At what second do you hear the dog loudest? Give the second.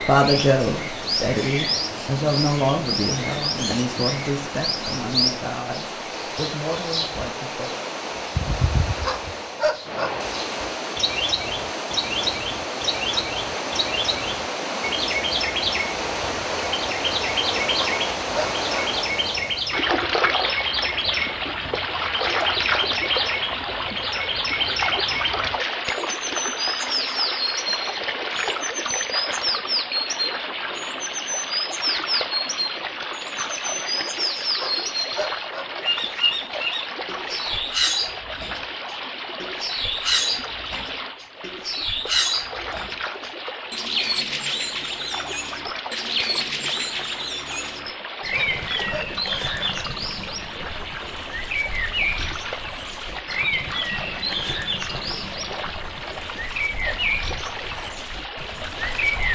10 s.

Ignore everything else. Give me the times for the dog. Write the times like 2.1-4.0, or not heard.
9.0-10.1, 17.8-18.9, 34.5-35.6, 48.3-49.4.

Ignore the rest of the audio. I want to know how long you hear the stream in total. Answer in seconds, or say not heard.
59 s.